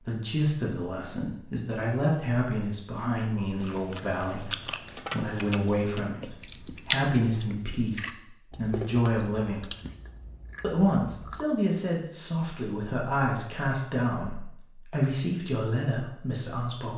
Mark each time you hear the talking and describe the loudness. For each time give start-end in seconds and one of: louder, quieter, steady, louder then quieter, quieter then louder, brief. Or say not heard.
0.0-9.7 steady
10.6-16.9 steady.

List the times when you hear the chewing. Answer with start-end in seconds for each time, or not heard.
3.5-11.4.